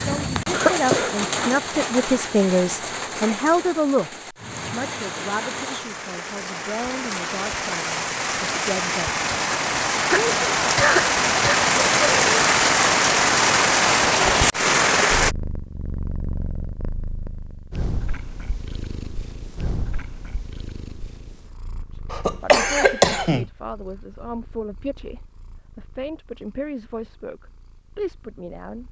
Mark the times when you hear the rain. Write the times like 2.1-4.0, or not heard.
0.0-15.3.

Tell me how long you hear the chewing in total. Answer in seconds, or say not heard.
not heard.